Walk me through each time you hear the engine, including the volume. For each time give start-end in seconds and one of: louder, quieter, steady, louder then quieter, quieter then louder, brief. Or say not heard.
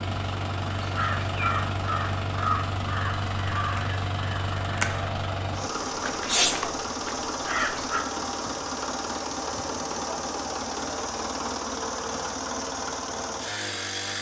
0.0-14.1 steady.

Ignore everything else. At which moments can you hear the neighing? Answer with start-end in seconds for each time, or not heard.
not heard.